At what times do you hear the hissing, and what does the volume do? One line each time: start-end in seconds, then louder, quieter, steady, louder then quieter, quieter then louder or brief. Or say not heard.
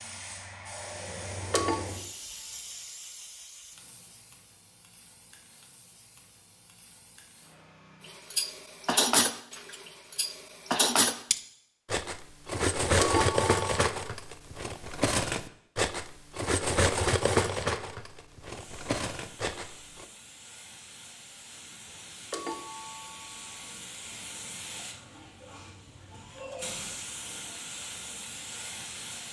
0.0-8.2 quieter
18.4-29.2 louder.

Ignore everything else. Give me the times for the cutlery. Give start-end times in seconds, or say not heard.
8.1-20.1.